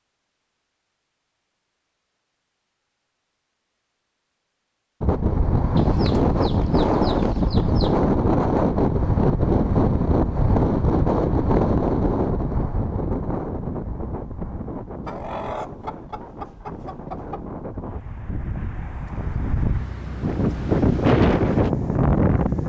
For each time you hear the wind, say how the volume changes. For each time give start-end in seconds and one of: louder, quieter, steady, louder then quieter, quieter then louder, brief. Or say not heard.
5.0-22.6 quieter then louder.